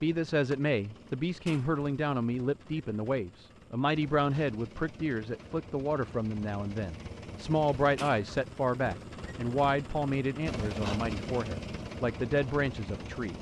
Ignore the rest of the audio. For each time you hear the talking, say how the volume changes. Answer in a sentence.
The talking can be heard from 0.0 to 13.3 s, at a steady volume.